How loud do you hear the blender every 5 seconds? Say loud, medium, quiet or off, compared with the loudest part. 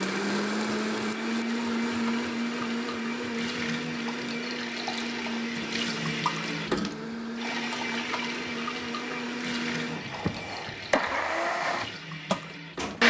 loud, medium, loud.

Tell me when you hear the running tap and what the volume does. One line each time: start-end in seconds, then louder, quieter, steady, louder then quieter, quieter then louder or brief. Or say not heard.
0.0-13.0 louder then quieter.